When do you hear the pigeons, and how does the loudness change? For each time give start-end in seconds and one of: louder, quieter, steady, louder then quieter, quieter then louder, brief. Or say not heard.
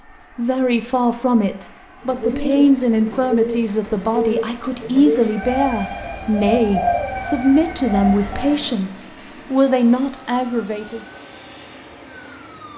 2.0-8.3 steady.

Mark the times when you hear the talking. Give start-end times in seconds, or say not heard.
0.3-11.0.